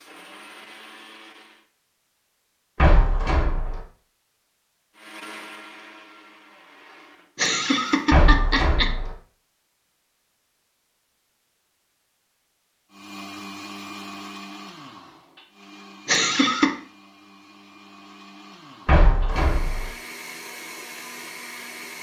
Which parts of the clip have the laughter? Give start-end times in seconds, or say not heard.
7.3-8.9, 16.1-16.8.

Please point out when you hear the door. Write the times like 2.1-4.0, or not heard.
2.8-3.8, 8.1-9.1, 18.9-19.9.